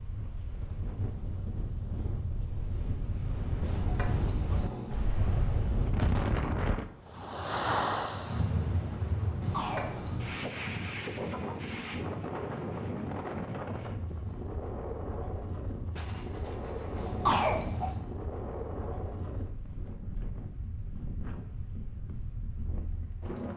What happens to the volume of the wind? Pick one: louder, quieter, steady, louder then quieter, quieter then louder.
louder then quieter.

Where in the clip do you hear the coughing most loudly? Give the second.
17 s.